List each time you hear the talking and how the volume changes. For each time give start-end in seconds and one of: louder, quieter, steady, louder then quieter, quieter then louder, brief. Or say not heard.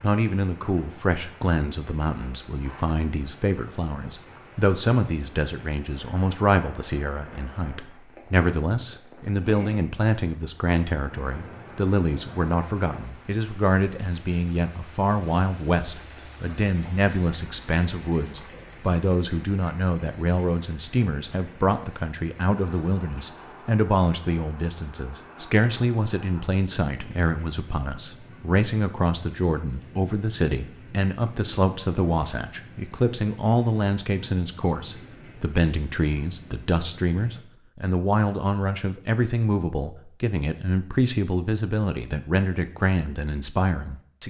0.0-44.2 steady.